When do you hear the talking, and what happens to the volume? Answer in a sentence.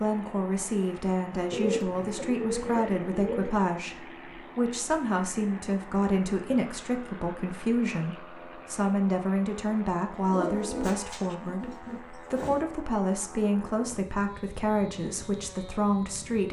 The talking can be heard from 0.0 to 16.4 s, at a steady volume.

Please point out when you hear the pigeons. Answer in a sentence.
You can hear the pigeons from 1.5 to 3.5 s and from 10.2 to 12.6 s.